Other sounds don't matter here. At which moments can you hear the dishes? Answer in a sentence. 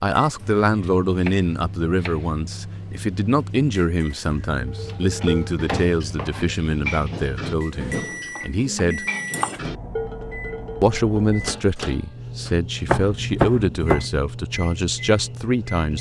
The dishes can be heard from 4.5 to 11.3 s.